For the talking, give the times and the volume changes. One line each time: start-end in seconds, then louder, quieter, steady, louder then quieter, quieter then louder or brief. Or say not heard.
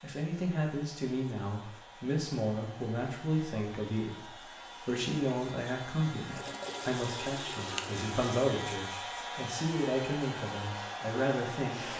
0.0-11.9 steady.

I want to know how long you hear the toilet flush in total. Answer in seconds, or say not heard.
2 s.